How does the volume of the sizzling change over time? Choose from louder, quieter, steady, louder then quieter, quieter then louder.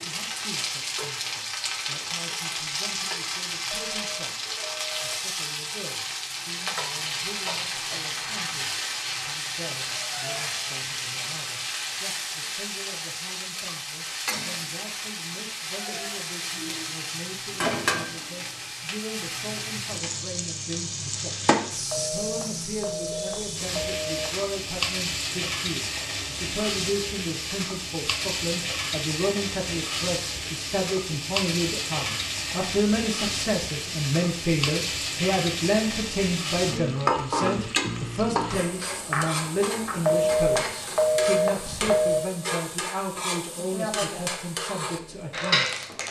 steady.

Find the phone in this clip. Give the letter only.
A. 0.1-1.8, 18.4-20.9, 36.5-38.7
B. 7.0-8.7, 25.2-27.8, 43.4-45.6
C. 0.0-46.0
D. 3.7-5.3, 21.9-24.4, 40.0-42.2
D.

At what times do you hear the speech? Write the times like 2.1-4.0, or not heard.
0.0-46.0.